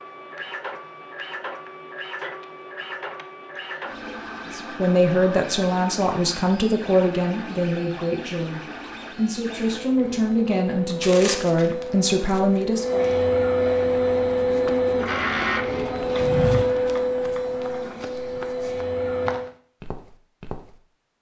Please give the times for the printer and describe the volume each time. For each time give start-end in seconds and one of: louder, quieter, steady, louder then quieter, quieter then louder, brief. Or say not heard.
0.0-19.5 louder.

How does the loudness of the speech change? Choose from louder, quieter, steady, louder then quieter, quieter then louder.
quieter then louder.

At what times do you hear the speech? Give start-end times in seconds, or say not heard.
4.5-13.1.